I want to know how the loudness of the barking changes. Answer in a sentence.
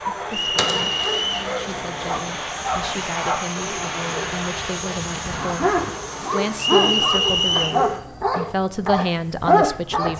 The volume of the barking goes up.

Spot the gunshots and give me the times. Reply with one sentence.
The gunshots can be heard from 0.6 to 1.6 s.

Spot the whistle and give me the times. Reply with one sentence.
The whistle can be heard from 0.3 to 1.5 s and from 6.5 to 7.8 s.